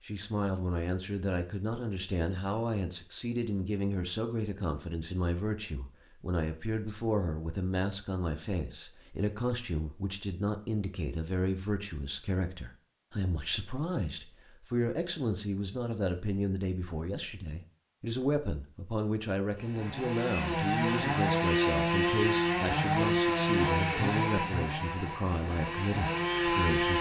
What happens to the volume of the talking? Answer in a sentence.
The volume of the talking stays about the same.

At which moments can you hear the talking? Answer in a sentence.
You can hear the talking from 0.0 to 26.9 s.